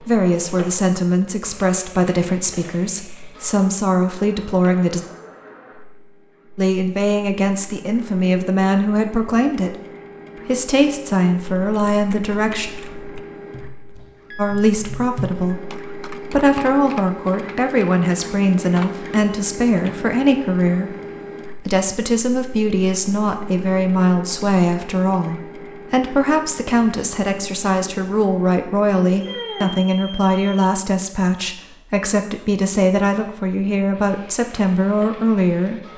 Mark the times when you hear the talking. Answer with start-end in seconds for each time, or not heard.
0.0-5.0, 6.5-12.7, 14.3-20.9, 21.6-35.9.